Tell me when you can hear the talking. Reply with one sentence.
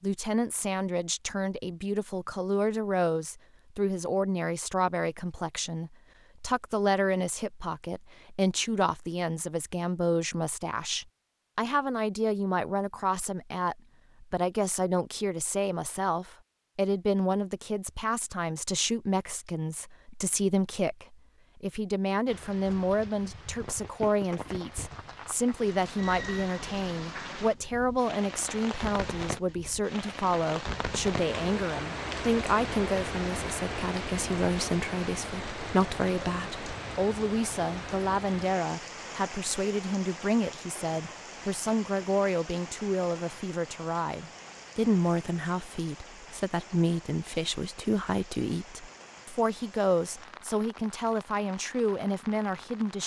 You can hear the talking from 0.0 to 53.0 s.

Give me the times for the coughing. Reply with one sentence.
The coughing can't be heard in this clip.